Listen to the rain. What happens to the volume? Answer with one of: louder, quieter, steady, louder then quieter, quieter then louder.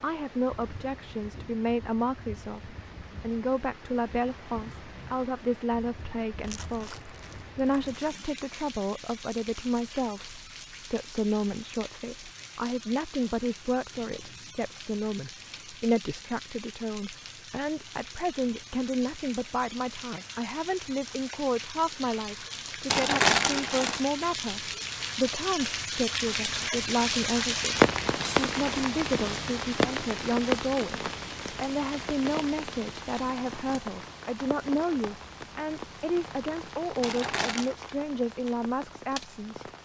louder then quieter.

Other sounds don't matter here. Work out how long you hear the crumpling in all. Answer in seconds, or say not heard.
4 s.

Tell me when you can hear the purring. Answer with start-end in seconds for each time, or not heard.
not heard.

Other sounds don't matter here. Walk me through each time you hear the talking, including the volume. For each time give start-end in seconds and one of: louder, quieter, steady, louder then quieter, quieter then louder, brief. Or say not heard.
0.0-39.6 steady.